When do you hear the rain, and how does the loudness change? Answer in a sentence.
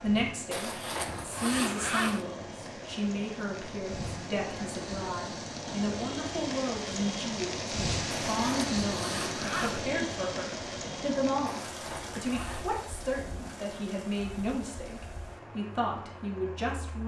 You can hear the rain from 0.0 to 17.0 s, getting louder then quieter.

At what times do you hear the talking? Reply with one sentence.
You can hear the talking from 0.0 to 17.0 s.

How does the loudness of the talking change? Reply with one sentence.
The loudness of the talking stays about the same.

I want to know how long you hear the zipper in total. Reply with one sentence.
You can hear the zipper for 5 seconds altogether.